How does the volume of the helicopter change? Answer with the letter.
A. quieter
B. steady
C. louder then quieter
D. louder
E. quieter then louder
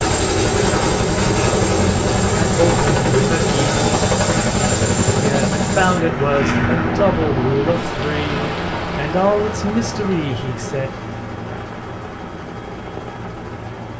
A.